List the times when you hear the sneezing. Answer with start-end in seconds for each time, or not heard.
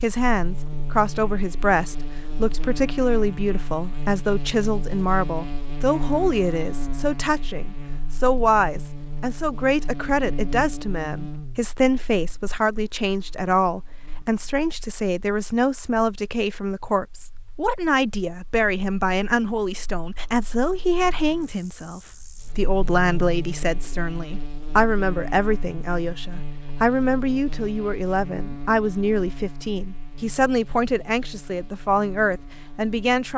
not heard.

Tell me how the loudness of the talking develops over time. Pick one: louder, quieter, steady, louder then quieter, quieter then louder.
steady.